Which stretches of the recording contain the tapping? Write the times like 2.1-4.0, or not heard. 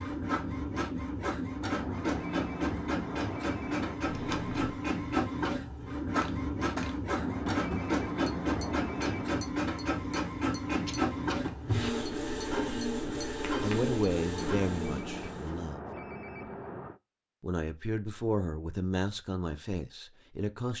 6.2-14.4.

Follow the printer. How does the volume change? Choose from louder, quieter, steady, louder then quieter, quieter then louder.
steady.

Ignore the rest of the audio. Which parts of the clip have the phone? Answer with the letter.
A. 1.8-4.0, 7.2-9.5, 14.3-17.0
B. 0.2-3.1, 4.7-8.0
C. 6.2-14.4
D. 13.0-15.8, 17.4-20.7
A.